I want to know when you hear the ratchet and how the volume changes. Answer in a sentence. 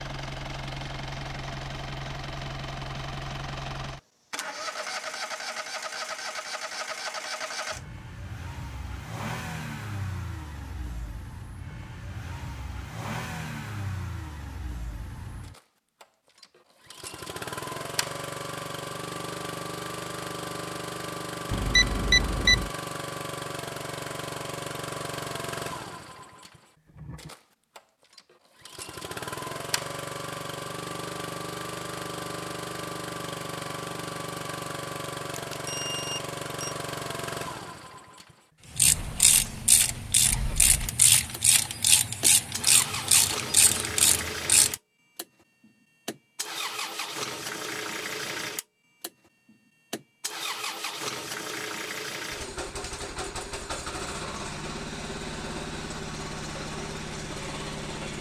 The ratchet can be heard from 38.8 to 44.8 s, at a steady volume.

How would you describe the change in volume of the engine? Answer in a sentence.
The volume of the engine stays about the same.